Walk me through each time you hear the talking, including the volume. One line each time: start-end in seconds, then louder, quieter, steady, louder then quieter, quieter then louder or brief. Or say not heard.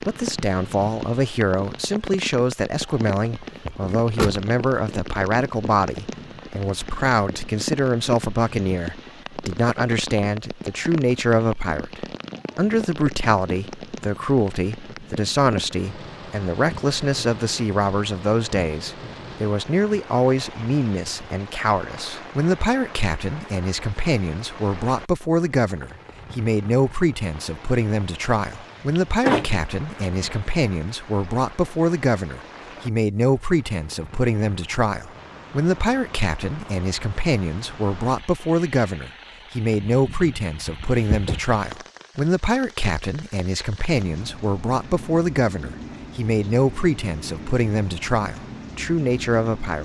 0.1-49.8 steady.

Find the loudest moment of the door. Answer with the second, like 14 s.
29 s.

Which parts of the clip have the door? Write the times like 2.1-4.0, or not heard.
3.6-4.5, 28.9-30.4, 40.8-41.4.